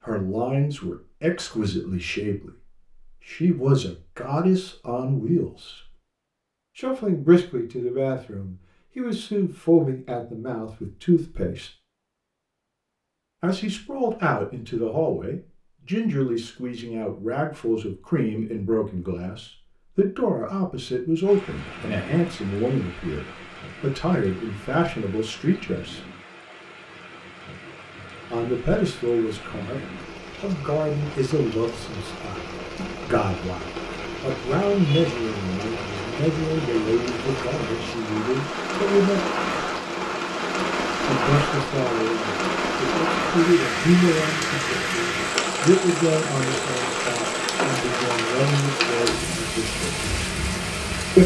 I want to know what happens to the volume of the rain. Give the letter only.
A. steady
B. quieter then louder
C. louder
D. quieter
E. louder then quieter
C.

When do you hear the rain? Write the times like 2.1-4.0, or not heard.
21.2-51.2.